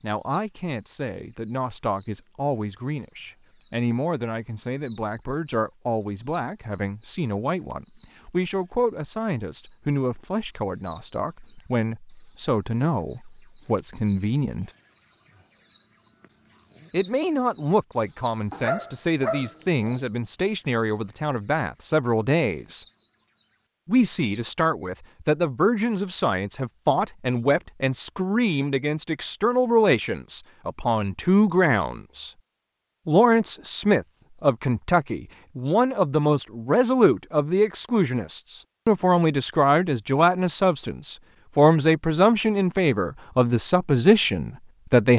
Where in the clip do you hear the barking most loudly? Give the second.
19 s.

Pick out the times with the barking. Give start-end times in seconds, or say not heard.
18.5-20.0.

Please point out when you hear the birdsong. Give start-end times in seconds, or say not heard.
0.0-24.6.